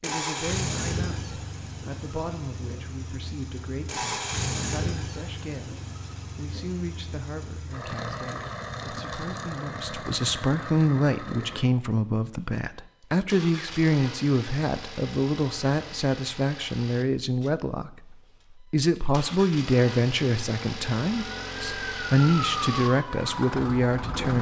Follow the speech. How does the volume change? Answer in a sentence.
The volume of the speech goes up.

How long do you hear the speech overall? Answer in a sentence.
The speech can be heard for 24 seconds in total.